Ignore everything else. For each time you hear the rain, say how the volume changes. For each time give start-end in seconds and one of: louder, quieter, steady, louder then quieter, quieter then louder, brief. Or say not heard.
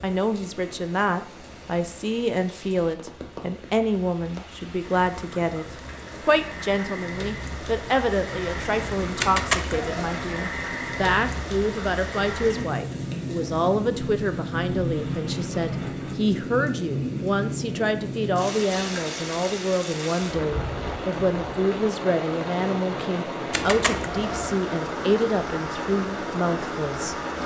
0.0-27.4 louder.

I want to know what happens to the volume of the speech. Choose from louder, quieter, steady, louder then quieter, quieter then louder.
steady.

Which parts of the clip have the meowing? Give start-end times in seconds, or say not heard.
9.2-10.2, 23.5-24.6.